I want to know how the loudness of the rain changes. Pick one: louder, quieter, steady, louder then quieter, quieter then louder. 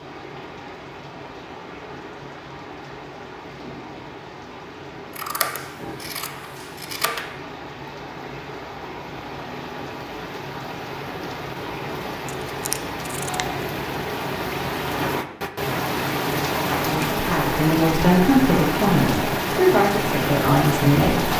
louder.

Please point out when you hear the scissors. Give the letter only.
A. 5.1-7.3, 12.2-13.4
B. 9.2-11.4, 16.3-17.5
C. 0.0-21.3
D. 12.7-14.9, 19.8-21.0
A.